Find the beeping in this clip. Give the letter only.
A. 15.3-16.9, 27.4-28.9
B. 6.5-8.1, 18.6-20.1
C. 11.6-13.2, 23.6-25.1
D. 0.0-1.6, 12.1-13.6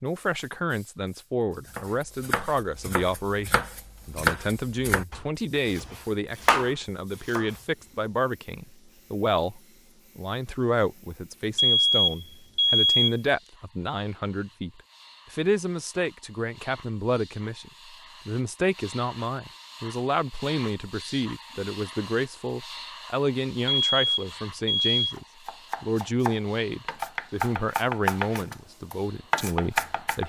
C.